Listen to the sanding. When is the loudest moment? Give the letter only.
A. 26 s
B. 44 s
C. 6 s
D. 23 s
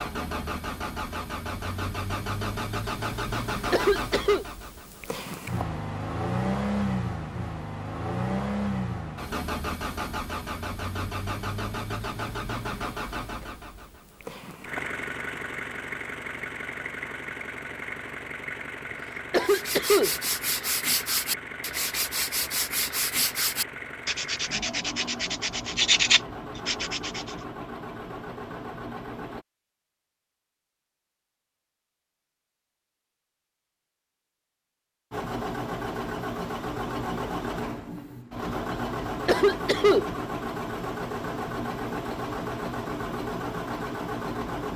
A.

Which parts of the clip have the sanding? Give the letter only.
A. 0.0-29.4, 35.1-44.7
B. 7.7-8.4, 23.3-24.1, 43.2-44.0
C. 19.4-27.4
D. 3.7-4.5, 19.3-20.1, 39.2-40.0
C.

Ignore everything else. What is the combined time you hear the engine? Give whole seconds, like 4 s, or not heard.
39 s.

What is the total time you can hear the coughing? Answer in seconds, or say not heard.
2 s.